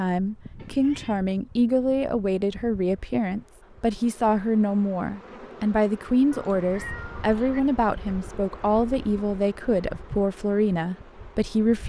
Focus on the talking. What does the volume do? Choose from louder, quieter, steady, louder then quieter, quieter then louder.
steady.